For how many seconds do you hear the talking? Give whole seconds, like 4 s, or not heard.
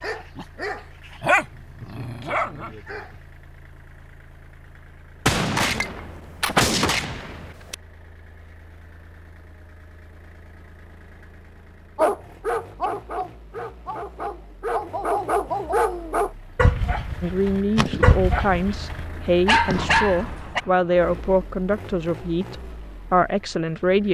7 s.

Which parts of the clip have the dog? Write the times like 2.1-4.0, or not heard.
0.0-3.2, 11.9-20.6.